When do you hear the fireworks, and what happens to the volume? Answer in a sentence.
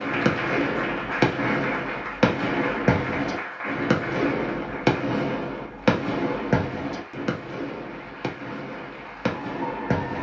The fireworks can be heard from 0.0 to 10.1 s, getting quieter.